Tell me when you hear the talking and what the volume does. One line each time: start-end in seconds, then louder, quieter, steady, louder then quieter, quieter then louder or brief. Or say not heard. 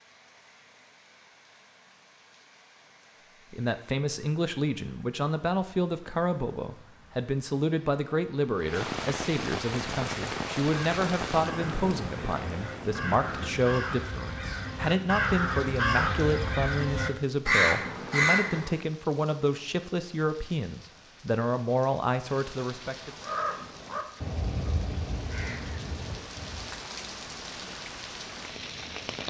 3.5-23.1 steady.